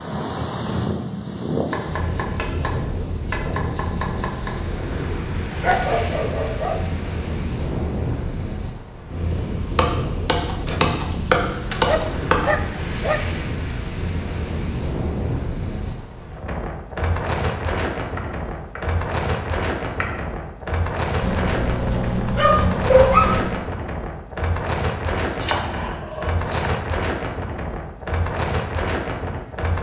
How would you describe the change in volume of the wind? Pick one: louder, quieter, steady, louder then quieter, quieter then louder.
steady.